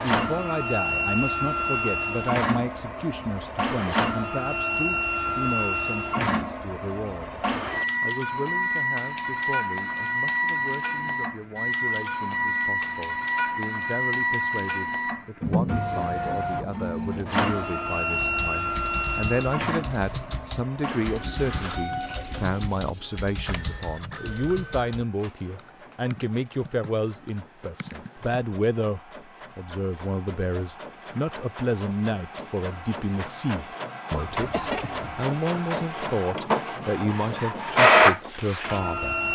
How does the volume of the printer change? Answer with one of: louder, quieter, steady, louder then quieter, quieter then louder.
quieter then louder.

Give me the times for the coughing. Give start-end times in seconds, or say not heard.
34.1-35.2.